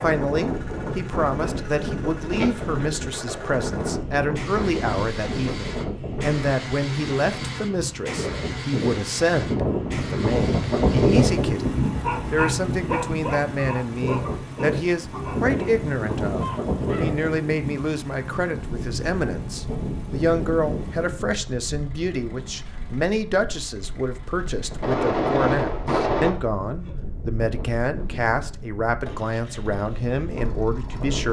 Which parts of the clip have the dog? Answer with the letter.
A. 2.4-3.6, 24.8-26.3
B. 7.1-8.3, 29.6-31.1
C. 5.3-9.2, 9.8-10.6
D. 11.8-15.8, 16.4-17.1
D.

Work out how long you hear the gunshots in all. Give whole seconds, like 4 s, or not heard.
3 s.